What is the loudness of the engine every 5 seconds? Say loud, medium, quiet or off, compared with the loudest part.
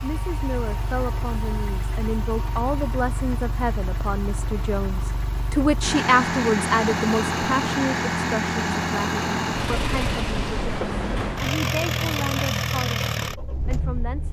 medium, loud, loud.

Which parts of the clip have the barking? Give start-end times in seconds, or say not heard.
not heard.